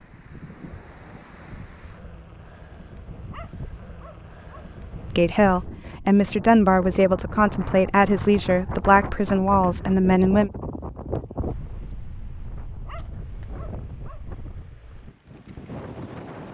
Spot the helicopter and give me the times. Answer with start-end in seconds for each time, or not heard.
not heard.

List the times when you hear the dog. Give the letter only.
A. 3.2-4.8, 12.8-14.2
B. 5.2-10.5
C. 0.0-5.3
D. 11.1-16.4
A.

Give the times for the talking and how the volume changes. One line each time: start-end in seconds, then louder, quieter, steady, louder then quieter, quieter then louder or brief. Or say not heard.
5.2-10.5 steady.